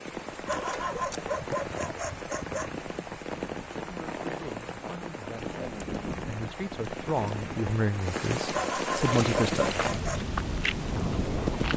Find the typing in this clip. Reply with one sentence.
The typing can't be heard in this clip.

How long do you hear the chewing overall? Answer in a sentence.
You can hear the chewing for 3 seconds altogether.